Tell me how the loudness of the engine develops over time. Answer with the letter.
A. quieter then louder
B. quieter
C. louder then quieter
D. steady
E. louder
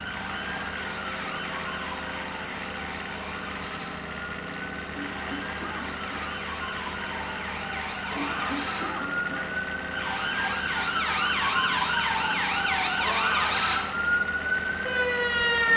D.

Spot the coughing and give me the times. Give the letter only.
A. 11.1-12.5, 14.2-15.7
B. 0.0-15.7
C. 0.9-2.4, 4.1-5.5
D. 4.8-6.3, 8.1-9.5
D.